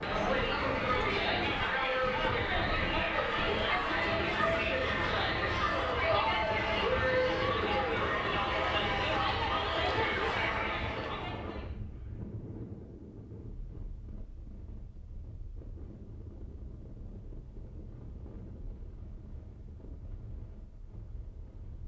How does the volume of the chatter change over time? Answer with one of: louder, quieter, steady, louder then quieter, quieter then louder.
steady.